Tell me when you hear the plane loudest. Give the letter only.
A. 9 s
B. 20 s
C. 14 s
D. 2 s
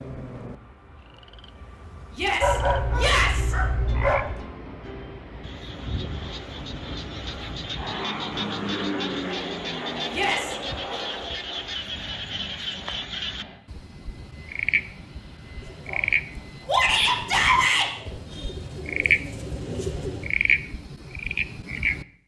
A.